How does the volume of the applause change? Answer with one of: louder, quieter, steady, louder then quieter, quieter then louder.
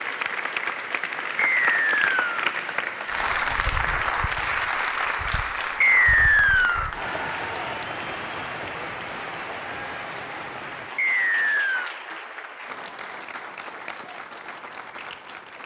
quieter.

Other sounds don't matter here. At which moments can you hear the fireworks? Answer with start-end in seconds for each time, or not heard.
not heard.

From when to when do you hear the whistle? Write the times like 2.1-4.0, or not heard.
1.4-2.4, 5.8-6.9, 10.9-11.9.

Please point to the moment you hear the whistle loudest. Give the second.
6 s.